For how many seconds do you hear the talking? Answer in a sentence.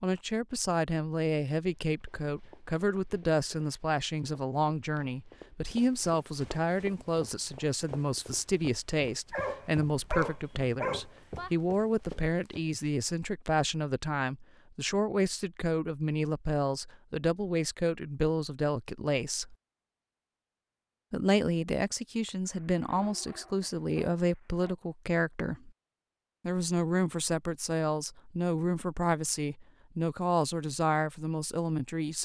The talking can be heard for 30 seconds in total.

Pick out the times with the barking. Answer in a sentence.
The barking can be heard from 9.3 to 11.5 s and from 22.4 to 24.8 s.